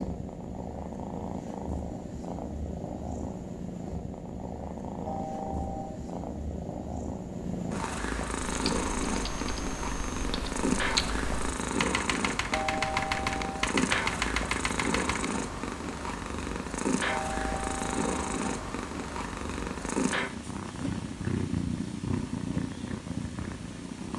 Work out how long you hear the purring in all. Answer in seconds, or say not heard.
24 s.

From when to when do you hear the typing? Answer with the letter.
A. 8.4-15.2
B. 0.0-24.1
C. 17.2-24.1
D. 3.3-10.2
A.